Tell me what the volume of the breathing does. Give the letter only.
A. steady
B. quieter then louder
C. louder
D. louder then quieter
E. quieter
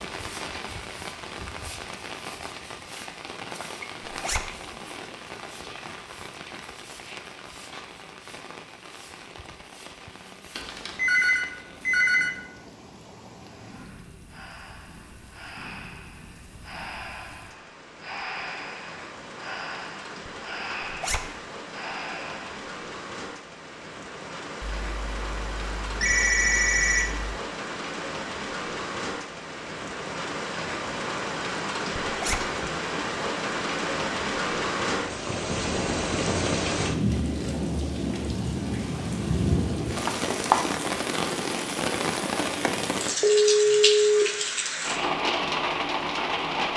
C.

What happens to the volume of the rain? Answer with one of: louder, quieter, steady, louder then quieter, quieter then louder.
quieter then louder.